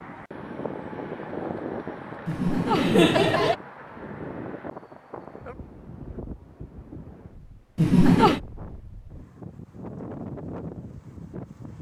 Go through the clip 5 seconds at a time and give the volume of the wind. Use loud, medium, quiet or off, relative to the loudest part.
loud, medium, loud.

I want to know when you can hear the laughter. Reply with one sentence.
The laughter can be heard from 2.2 to 3.5 s and from 7.8 to 8.4 s.